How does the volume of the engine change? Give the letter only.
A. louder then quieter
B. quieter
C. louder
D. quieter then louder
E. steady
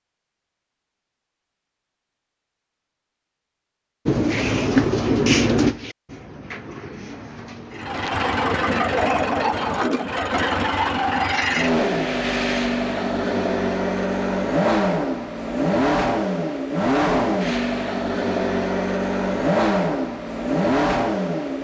E.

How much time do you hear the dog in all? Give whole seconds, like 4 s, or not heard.
not heard.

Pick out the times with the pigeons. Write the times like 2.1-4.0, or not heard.
4.0-9.9.